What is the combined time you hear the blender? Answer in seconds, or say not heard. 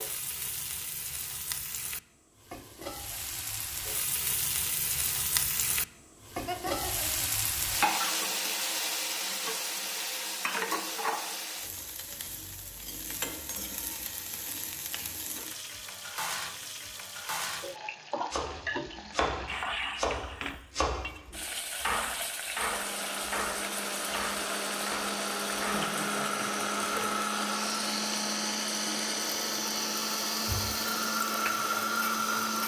10 s.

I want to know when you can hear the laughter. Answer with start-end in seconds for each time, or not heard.
6.5-7.3, 25.6-26.6.